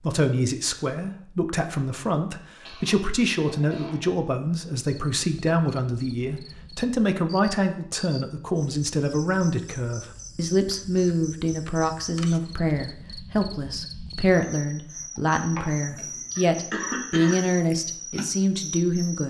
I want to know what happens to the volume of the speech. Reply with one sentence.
The volume of the speech stays about the same.